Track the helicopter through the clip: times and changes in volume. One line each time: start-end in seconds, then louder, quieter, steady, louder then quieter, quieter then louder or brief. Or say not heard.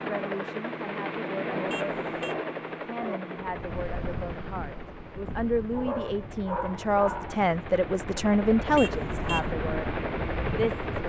0.0-11.0 quieter then louder.